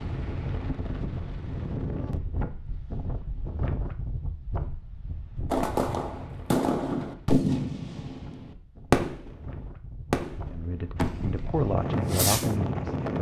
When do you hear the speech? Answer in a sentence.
The speech can be heard from 10.4 to 13.1 s.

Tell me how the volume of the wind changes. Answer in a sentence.
The volume of the wind goes down, then up.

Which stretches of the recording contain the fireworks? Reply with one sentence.
The fireworks can be heard from 5.5 to 9.4 s and from 10.1 to 12.5 s.